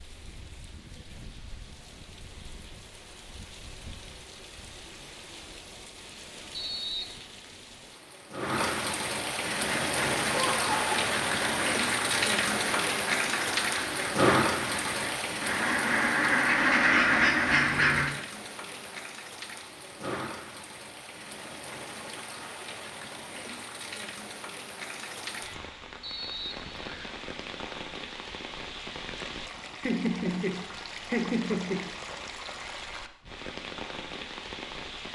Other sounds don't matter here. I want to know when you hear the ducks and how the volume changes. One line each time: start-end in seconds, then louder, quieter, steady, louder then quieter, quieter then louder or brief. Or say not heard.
9.5-18.1 louder.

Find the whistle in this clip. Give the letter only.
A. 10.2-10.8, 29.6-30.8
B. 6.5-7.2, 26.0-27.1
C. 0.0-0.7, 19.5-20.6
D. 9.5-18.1
B.